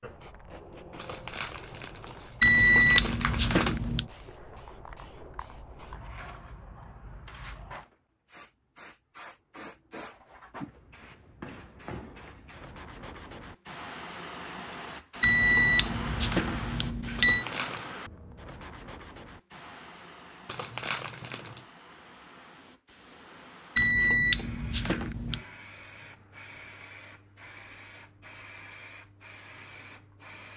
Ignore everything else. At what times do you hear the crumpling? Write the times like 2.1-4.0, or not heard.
0.9-3.8, 17.1-17.9, 20.4-21.6.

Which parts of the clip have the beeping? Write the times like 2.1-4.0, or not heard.
2.4-4.0, 15.2-17.4, 23.8-25.4.